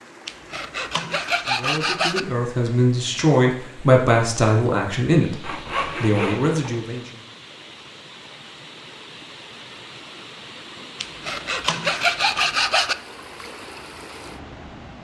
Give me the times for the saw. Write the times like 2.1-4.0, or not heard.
0.2-2.2, 5.4-6.8, 11.0-12.9.